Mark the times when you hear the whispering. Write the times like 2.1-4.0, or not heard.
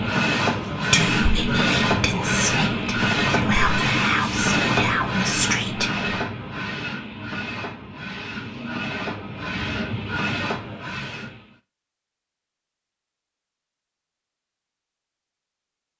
0.9-6.2.